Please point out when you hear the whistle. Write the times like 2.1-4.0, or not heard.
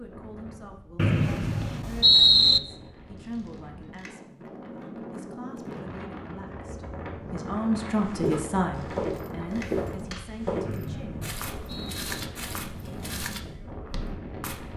0.9-2.6, 10.7-12.0.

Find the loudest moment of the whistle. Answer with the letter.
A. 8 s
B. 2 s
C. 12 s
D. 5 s
B.